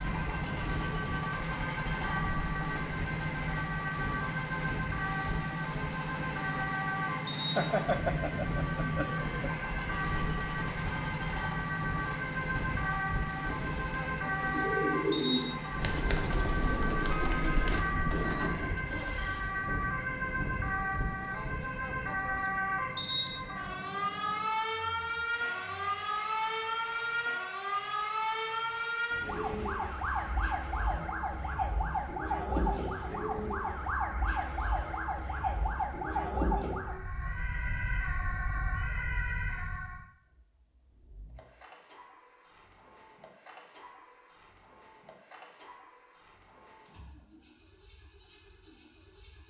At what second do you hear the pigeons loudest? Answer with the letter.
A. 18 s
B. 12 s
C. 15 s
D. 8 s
C.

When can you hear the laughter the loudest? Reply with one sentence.
The loudest moment of the laughter is at 8 seconds.